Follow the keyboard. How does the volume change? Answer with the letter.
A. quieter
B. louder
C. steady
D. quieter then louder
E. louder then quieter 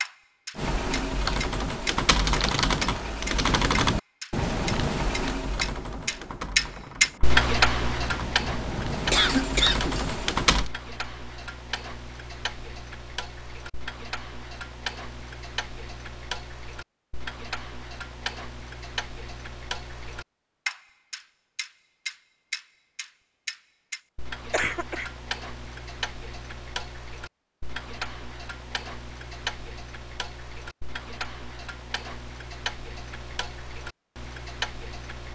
D.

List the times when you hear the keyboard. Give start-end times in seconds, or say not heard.
0.6-10.7.